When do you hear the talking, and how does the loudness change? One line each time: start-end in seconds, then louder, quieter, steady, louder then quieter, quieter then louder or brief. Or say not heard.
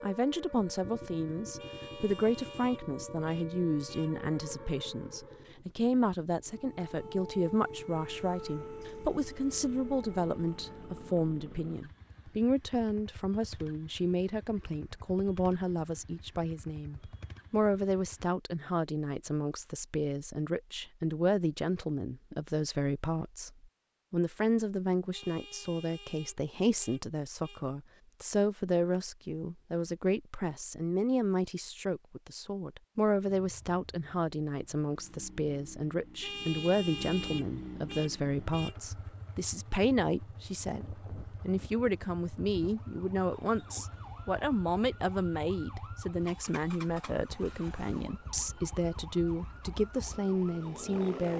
0.0-23.5 steady
24.1-51.3 steady.